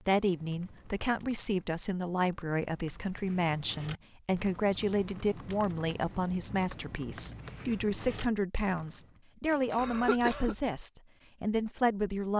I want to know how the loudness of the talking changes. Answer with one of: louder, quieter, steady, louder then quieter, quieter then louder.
steady.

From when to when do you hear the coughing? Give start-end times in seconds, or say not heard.
9.8-10.8.